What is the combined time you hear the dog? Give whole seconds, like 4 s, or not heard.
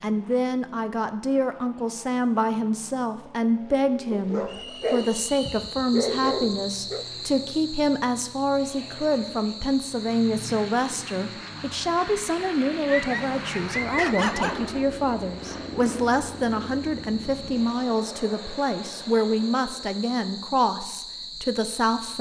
5 s.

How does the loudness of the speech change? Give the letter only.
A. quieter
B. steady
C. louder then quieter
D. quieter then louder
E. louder
B.